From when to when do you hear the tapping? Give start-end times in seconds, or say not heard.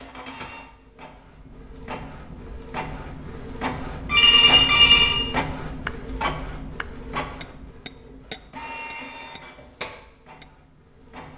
5.8-10.4.